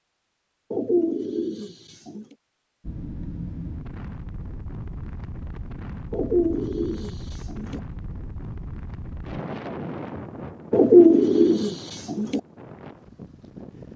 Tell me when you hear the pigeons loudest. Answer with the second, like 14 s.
11 s.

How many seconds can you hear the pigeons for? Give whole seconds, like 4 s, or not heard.
5 s.